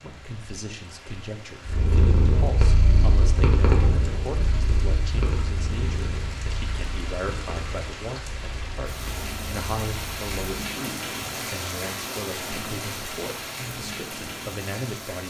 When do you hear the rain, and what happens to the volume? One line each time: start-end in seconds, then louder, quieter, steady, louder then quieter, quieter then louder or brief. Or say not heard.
0.0-15.2 louder.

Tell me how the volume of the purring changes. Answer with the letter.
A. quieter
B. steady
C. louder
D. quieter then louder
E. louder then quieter
A.